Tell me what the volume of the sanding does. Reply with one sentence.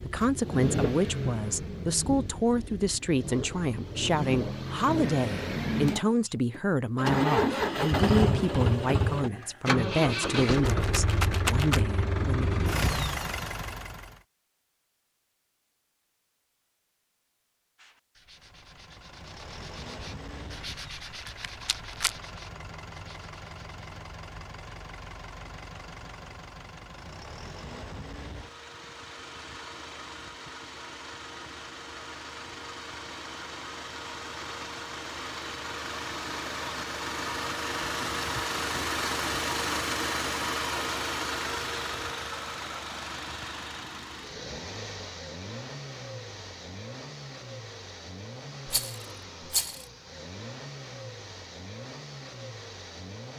The volume of the sanding goes up, then down.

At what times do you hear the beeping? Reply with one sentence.
You can't hear the beeping here.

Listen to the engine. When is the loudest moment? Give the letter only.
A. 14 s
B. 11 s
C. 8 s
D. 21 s
C.